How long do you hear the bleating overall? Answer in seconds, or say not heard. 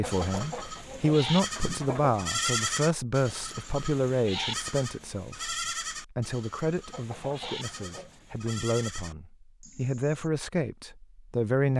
10 s.